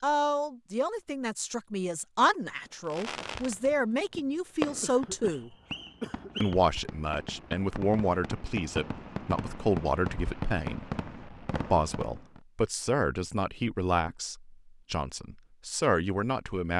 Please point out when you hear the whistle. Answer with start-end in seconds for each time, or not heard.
5.3-6.5.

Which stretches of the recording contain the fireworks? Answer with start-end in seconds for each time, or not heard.
2.6-12.4.